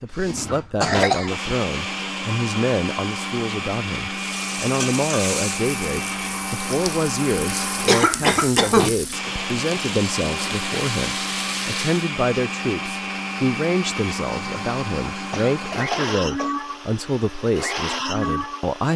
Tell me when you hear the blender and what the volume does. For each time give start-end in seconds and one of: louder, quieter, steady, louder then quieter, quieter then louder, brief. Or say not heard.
0.0-18.9 steady.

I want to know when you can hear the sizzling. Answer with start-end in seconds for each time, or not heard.
4.1-12.1.